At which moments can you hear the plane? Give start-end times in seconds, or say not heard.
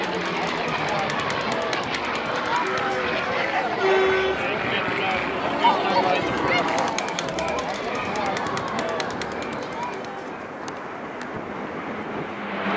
0.0-12.7.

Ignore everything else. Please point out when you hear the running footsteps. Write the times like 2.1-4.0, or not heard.
not heard.